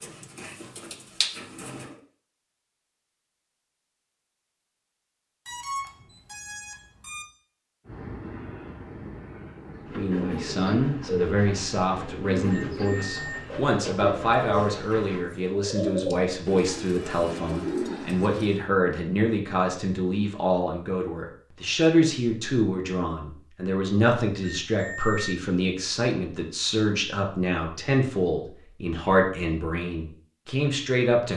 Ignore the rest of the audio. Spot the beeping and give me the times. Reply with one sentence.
You can hear the beeping from 5.5 to 7.2 s, from 12.4 to 13.4 s and from 24.4 to 25.4 s.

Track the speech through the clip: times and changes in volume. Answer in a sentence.
The speech can be heard from 9.9 to 31.3 s, at a steady volume.